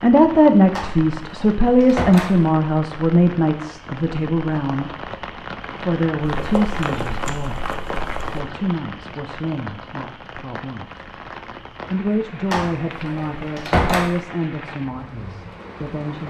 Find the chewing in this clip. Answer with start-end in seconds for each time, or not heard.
6.2-8.4.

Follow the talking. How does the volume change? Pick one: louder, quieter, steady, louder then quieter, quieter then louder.
quieter.